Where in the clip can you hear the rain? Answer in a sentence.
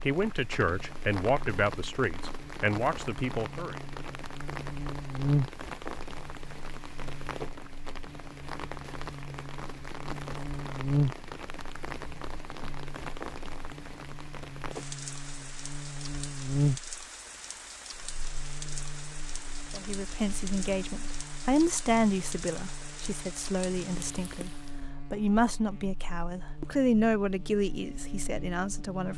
The rain can be heard from 0.0 to 24.9 s.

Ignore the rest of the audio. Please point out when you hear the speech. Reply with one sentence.
The speech can be heard from 0.1 to 3.8 s and from 19.7 to 29.1 s.